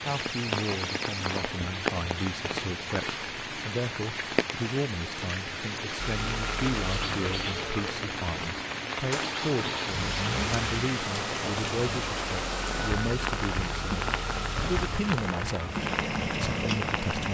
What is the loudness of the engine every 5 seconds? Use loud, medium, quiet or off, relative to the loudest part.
off, loud, loud, loud.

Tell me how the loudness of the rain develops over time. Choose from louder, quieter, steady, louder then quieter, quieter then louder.
steady.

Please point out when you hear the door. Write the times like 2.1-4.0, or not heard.
0.1-1.7.